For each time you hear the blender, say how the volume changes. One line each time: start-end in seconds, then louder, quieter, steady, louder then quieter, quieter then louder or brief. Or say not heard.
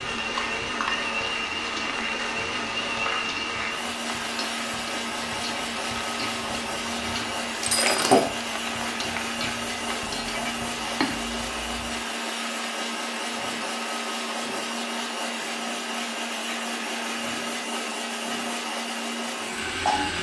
0.0-20.1 steady.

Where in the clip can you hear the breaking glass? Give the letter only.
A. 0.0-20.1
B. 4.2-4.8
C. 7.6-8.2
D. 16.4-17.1
C.